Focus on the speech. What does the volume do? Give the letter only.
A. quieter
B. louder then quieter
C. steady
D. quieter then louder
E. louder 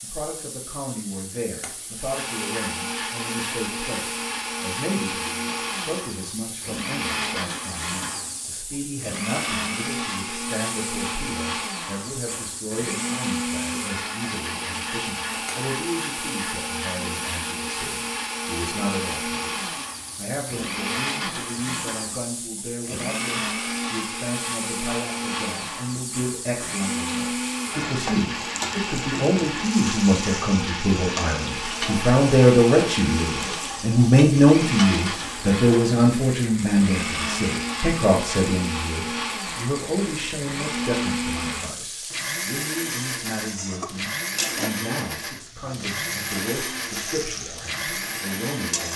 B.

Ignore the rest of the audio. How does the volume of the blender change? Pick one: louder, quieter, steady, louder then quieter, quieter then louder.
steady.